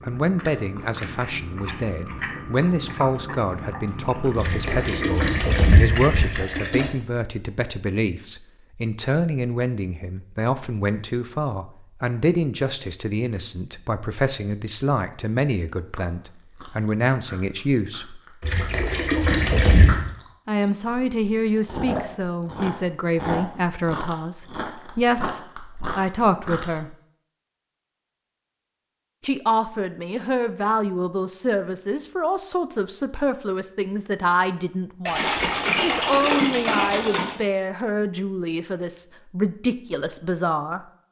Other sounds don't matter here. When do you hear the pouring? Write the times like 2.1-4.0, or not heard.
4.3-6.9, 18.4-20.0, 35.0-37.4.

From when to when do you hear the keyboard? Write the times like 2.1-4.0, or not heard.
not heard.